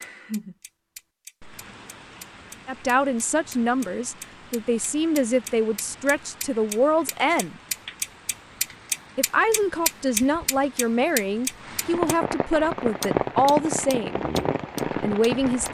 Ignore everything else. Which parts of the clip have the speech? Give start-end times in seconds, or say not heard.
2.6-7.5, 9.2-14.2, 14.9-15.6.